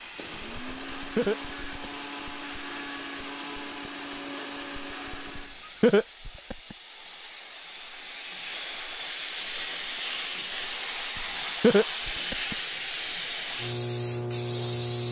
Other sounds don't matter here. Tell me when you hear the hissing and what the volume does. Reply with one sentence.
You can hear the hissing from 0.0 to 15.0 s, getting louder.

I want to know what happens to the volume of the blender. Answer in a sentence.
The volume of the blender stays about the same.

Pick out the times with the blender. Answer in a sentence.
You can hear the blender from 0.1 to 5.5 s.